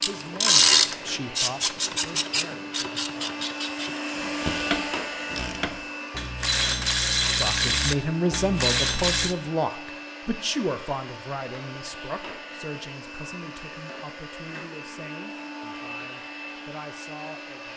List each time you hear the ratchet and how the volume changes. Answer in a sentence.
You can hear the ratchet from 0.0 to 9.3 s, getting quieter then louder.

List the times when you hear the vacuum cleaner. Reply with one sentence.
You can hear the vacuum cleaner from 0.0 to 17.7 s.